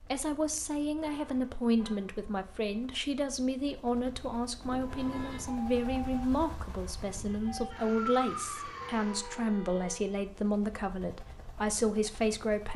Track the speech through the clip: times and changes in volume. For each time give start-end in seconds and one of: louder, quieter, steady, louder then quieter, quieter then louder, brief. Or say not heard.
0.0-12.7 steady.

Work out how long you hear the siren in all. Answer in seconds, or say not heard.
5 s.